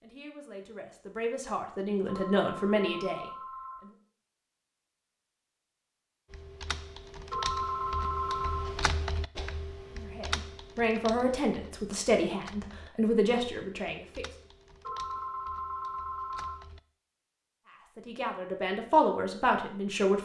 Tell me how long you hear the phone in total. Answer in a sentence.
The phone can be heard for 5 seconds in total.